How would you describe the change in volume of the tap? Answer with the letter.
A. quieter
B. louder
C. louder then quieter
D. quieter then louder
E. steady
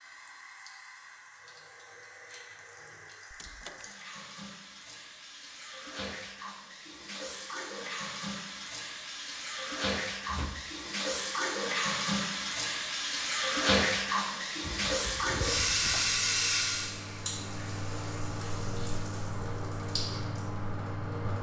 C.